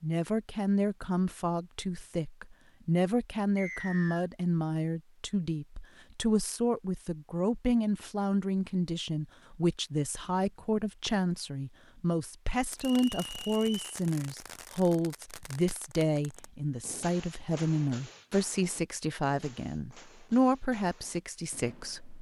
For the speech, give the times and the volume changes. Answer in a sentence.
You can hear the speech from 0.0 to 22.1 s, at a steady volume.